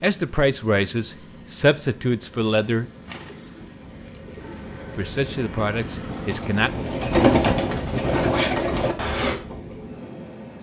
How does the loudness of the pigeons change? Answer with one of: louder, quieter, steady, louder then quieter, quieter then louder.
louder.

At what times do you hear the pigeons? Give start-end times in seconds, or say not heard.
3.0-9.4.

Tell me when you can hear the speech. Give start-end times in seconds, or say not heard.
0.0-2.9, 5.0-6.7.